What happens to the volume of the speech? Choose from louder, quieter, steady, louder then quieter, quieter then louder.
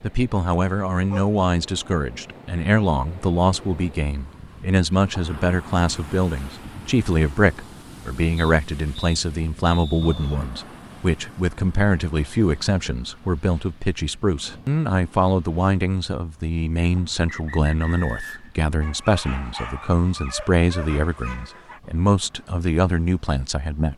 steady.